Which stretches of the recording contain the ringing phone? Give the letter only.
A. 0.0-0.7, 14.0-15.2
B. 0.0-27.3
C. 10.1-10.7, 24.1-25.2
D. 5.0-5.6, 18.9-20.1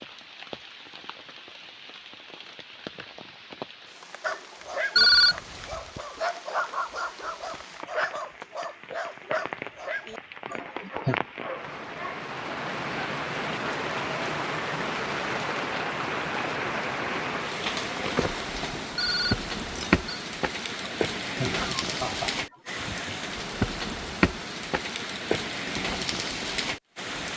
D.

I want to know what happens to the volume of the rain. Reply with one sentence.
The loudness of the rain goes up.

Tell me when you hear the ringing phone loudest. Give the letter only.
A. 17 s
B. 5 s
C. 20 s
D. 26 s
B.